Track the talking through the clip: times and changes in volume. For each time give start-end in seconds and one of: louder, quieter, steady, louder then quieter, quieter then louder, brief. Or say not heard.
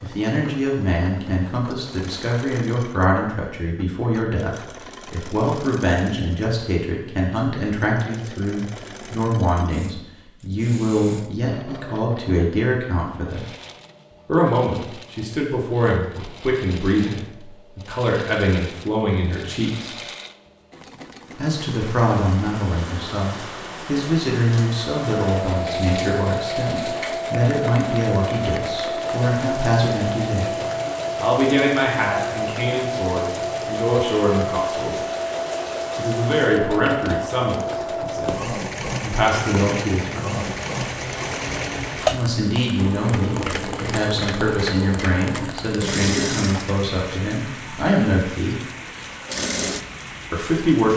0.0-13.4 steady
14.2-19.9 steady
21.4-35.0 steady
36.0-40.4 quieter then louder
42.0-48.6 steady
50.3-50.9 brief.